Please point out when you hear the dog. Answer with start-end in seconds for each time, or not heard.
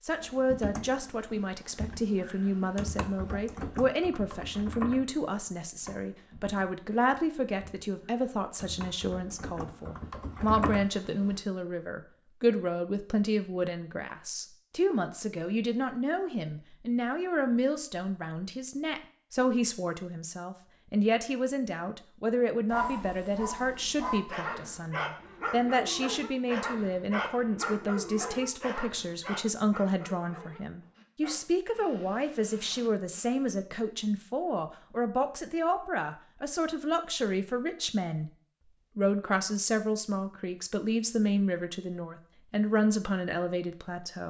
22.6-33.5.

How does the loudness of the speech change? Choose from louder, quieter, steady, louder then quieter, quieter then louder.
steady.